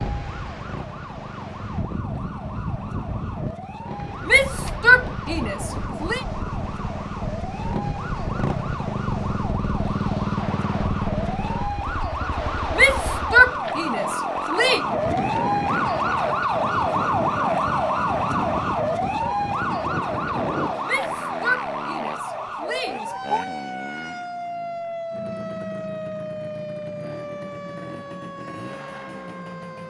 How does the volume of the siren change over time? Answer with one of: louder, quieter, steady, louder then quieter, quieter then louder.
louder then quieter.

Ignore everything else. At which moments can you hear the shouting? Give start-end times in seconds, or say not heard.
4.2-6.2, 12.8-14.8, 20.9-23.4.